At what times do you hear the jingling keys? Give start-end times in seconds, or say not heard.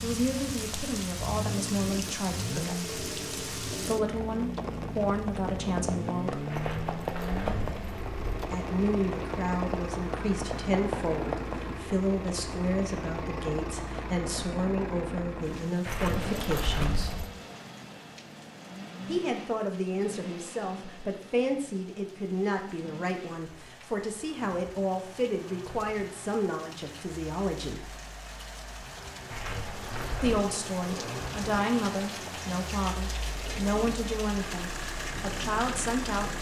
6.5-8.4, 15.8-17.3, 29.3-30.4.